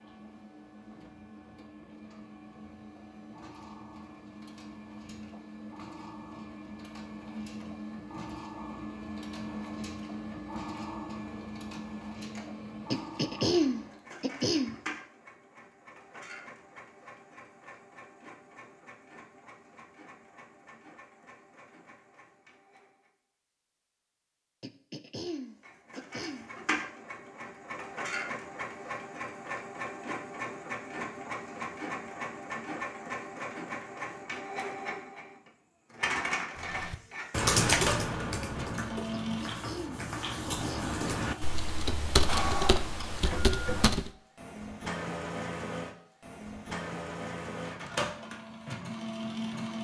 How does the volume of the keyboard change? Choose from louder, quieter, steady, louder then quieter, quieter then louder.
quieter then louder.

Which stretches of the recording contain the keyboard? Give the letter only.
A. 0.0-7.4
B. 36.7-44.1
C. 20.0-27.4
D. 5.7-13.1
B.